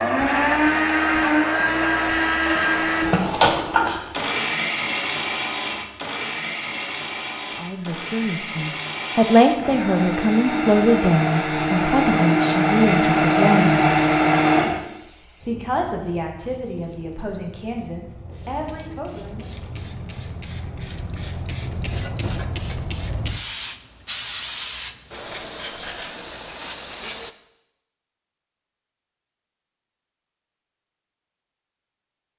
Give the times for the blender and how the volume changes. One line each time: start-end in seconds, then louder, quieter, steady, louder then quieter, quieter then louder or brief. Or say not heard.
0.0-14.8 quieter then louder.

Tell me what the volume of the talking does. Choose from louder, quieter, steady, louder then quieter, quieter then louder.
quieter.